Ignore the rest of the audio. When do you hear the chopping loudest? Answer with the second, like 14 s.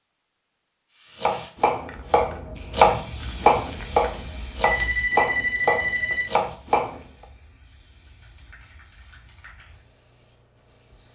3 s.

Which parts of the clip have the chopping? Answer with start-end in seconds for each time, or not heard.
1.2-7.0.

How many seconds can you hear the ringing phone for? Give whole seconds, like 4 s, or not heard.
2 s.